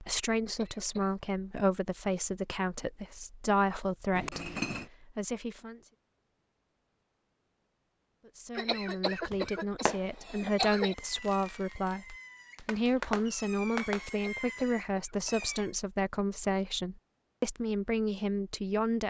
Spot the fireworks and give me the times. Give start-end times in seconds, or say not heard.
9.3-15.7.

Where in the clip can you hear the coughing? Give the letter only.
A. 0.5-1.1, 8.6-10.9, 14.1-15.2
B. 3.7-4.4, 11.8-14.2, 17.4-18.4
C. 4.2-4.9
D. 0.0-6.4
A.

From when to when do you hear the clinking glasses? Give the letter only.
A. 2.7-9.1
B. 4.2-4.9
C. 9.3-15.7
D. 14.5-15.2
B.